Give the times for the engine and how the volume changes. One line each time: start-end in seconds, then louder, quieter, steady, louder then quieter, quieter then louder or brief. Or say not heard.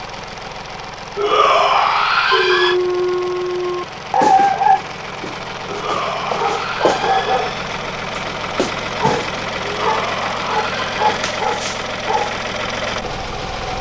0.0-13.7 louder.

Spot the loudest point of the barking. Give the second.
4 s.